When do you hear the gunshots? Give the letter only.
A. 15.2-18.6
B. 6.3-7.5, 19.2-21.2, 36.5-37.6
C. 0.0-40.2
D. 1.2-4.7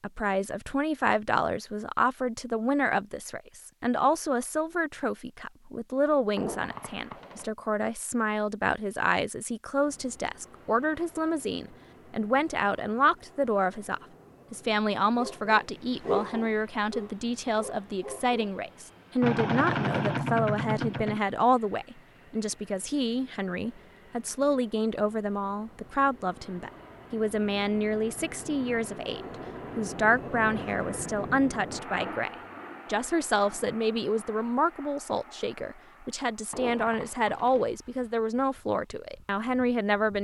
B.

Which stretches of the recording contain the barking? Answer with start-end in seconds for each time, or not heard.
15.2-18.6.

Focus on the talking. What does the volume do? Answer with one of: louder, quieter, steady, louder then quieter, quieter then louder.
steady.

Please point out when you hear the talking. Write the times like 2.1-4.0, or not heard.
0.0-40.2.